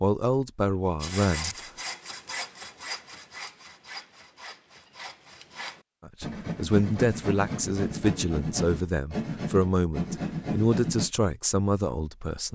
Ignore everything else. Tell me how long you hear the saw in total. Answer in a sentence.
The saw can be heard for 10 seconds in total.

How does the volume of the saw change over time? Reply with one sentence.
The volume of the saw goes down, then up.